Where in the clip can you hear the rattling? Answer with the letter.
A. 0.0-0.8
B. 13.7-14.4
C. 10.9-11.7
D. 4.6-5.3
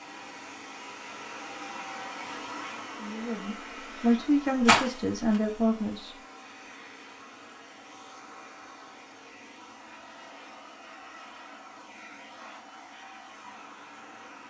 D.